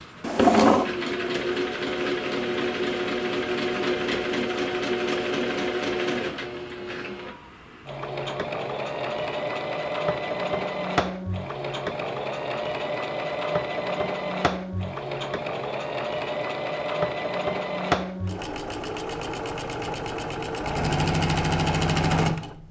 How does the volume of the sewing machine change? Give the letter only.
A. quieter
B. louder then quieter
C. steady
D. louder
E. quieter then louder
C.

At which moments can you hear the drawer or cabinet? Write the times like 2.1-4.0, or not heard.
0.2-0.9.